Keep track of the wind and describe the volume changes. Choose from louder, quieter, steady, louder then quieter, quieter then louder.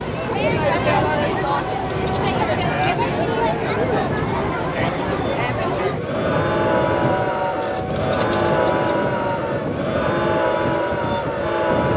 steady.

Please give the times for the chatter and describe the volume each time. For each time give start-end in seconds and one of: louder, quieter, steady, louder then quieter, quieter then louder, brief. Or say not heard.
0.0-11.9 steady.